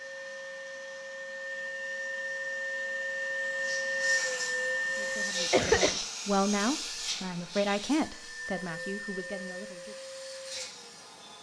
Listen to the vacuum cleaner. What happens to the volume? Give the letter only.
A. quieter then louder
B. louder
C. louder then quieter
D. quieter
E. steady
C.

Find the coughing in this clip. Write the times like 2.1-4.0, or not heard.
5.0-5.9.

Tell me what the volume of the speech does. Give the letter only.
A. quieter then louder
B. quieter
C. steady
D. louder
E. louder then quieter
E.